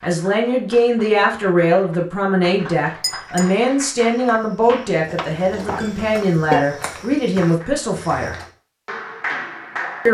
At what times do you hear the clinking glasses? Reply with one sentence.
The clinking glasses can be heard from 2.5 to 3.5 s and from 5.0 to 6.6 s.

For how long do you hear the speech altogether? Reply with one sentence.
The speech can be heard for 8 seconds in total.